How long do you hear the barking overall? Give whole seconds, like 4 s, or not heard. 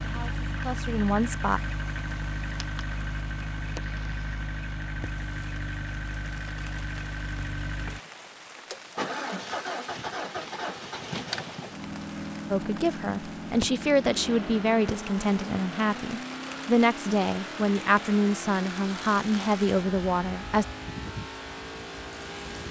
not heard.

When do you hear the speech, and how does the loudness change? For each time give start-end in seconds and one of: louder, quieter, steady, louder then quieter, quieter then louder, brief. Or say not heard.
0.0-1.6 brief
12.5-20.6 steady.